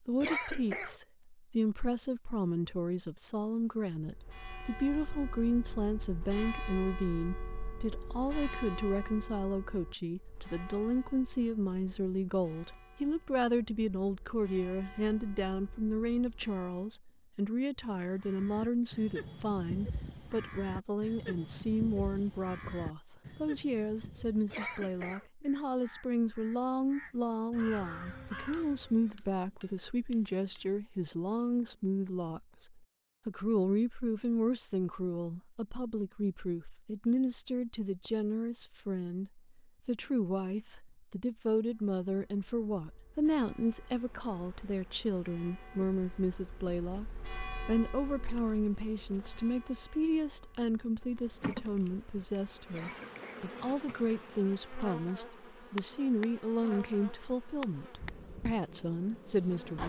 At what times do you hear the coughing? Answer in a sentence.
The coughing can be heard from 0.2 to 1.0 s, from 24.5 to 25.2 s and from 52.7 to 53.5 s.